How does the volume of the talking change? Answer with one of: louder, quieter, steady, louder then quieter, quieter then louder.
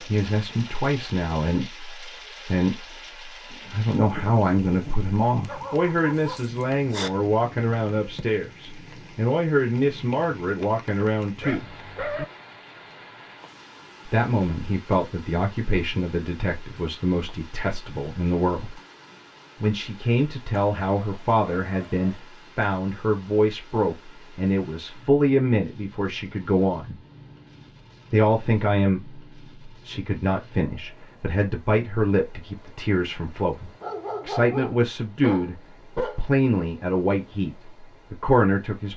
steady.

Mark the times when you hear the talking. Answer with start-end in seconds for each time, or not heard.
0.1-11.7, 14.1-18.8, 19.6-27.0, 28.1-38.9.